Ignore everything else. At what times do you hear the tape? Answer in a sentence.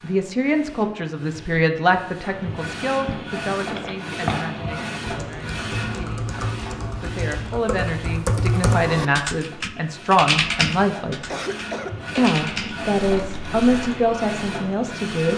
The tape can't be heard in this clip.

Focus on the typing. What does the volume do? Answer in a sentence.
The volume of the typing goes up, then down.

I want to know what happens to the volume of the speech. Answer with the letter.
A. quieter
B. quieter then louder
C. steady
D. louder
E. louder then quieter
B.